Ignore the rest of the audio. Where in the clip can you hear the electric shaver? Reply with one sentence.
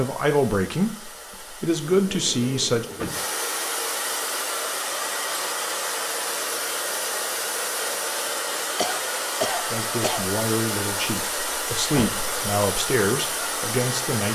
The electric shaver can't be heard in this clip.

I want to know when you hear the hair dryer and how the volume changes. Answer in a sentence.
You can hear the hair dryer from 0.0 to 14.2 s, getting louder.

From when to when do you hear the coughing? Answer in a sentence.
The coughing can be heard from 8.8 to 10.2 s.